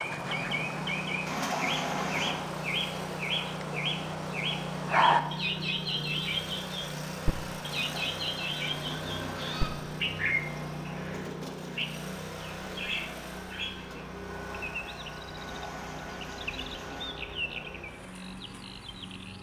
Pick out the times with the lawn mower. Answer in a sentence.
You can hear the lawn mower from 0.0 to 19.3 s.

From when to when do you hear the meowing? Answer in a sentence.
You can hear the meowing from 1.2 to 2.4 s, from 7.7 to 9.7 s and from 15.3 to 17.1 s.